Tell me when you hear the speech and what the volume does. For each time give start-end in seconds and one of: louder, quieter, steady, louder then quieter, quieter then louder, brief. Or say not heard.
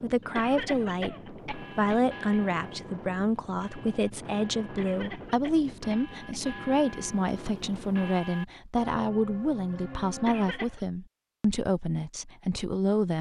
0.0-13.1 steady.